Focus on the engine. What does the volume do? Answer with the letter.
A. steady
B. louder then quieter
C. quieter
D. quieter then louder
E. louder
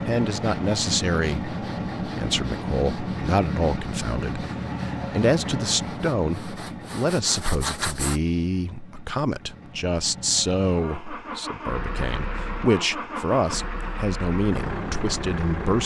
D.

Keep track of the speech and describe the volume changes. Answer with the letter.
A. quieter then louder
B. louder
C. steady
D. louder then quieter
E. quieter
C.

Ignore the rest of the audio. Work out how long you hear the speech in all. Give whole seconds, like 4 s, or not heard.
16 s.